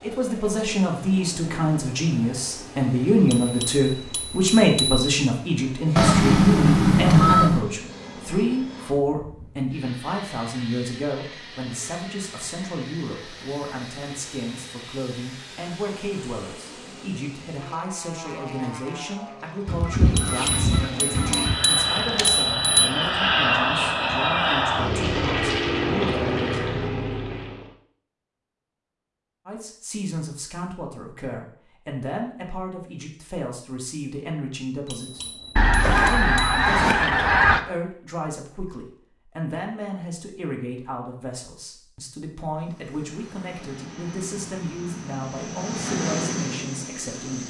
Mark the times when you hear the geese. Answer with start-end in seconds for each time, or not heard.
6.0-7.7, 19.6-22.2, 35.5-37.6.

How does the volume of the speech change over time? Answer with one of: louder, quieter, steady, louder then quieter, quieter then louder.
quieter.